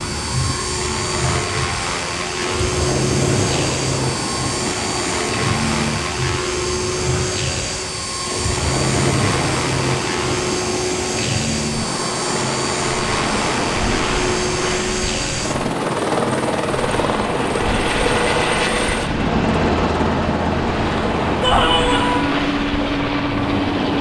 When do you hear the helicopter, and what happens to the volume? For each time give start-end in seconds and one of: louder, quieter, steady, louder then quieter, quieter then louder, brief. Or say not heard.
0.0-23.9 steady.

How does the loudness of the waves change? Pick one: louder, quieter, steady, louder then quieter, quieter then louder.
steady.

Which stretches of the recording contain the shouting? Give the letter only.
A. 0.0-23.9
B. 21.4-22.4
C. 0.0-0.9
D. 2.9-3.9
B.